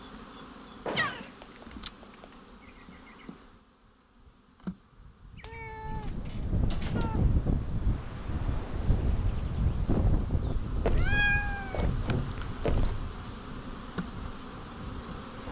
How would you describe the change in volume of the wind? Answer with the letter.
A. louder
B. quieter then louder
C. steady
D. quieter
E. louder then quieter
D.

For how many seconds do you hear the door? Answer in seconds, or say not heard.
4 s.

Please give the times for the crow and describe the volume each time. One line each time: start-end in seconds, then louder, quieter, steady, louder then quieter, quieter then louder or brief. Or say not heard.
not heard.